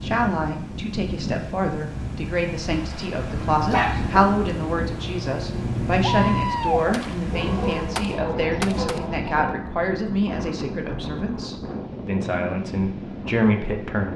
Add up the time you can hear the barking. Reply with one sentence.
You can hear the barking for 4 seconds altogether.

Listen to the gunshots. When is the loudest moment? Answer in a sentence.
The loudest moment of the gunshots is at 7 seconds.